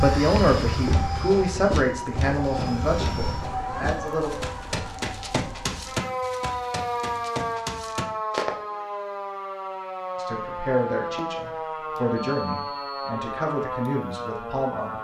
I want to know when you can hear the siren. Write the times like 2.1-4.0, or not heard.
0.0-14.9.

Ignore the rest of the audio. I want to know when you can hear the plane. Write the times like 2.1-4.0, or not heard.
0.0-3.5.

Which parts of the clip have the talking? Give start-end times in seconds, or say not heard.
0.0-4.3, 10.2-14.9.